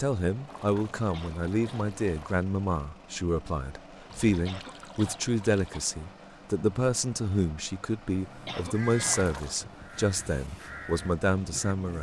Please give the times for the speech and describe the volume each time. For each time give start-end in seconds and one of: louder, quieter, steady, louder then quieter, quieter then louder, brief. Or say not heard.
0.0-11.9 steady.